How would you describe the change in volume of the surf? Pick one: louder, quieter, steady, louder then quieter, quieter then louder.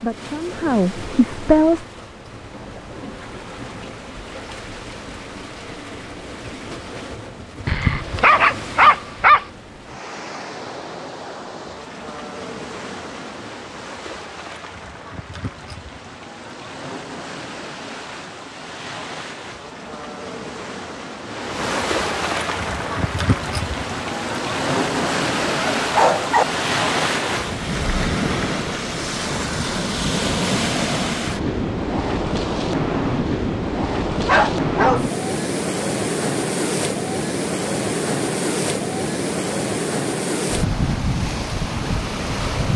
louder.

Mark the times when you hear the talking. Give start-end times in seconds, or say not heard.
0.0-1.9.